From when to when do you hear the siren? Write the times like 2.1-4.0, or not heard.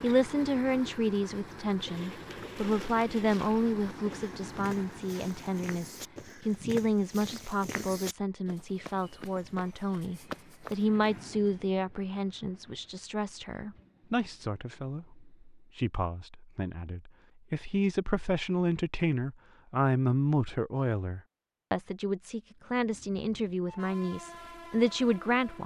not heard.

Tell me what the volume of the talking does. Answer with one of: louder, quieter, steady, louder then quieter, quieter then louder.
steady.